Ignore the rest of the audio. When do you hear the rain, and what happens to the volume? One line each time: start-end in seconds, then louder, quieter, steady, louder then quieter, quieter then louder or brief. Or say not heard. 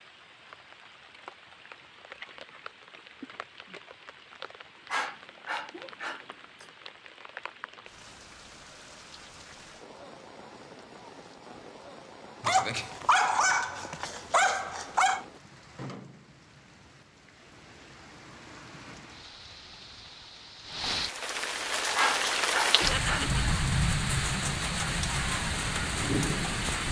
0.0-26.8 louder.